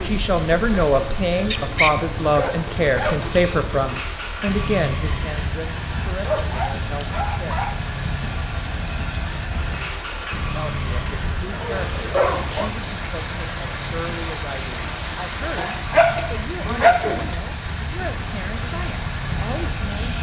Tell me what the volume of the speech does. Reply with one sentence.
The volume of the speech goes down.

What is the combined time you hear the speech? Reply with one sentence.
You can hear the speech for 17 seconds altogether.